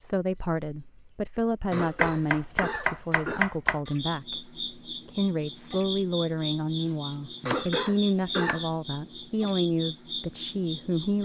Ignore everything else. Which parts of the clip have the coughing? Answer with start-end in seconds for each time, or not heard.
1.7-3.5, 7.5-8.7.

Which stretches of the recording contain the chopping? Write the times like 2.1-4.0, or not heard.
1.8-3.8, 6.8-8.6.